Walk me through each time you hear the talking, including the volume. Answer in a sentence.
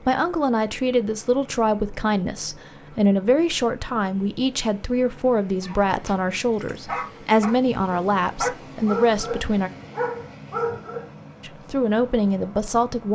You can hear the talking from 0.0 to 9.7 s, at a steady volume; and briefly from 11.4 to 13.0 s.